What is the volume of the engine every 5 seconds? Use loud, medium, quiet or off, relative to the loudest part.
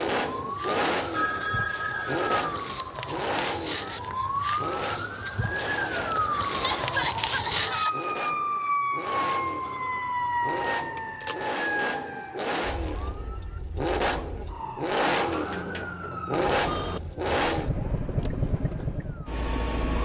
loud, medium, loud, loud.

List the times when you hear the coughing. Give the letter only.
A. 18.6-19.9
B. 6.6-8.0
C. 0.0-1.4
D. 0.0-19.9
B.